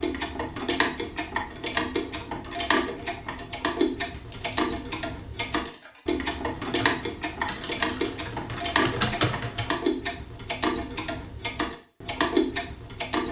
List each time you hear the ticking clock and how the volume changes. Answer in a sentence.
The ticking clock can be heard from 0.0 to 13.2 s, at a steady volume.